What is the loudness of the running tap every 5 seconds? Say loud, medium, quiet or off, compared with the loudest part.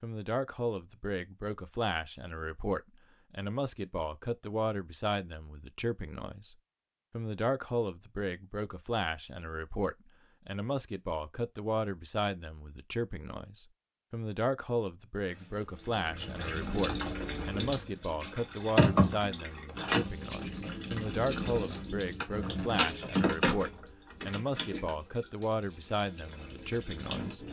off, off, off, loud, loud, medium.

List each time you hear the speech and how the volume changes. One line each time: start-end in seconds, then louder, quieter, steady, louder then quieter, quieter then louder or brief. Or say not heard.
0.0-27.4 steady.